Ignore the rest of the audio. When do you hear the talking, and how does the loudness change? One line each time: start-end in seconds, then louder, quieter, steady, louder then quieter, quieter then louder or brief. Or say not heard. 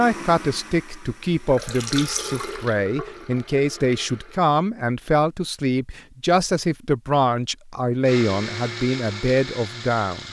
0.0-10.2 steady.